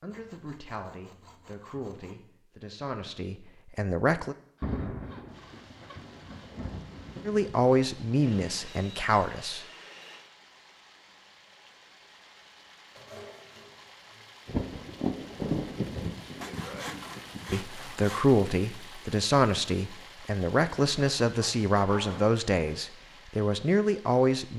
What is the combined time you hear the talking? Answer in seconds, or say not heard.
14 s.